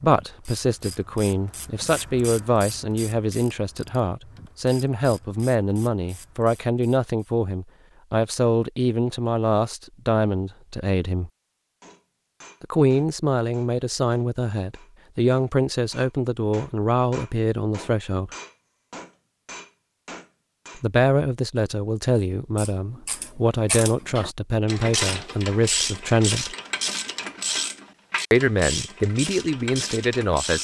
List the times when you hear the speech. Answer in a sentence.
The speech can be heard from 0.0 to 11.3 s, from 12.6 to 18.3 s, from 20.8 to 26.6 s and from 28.3 to 30.6 s.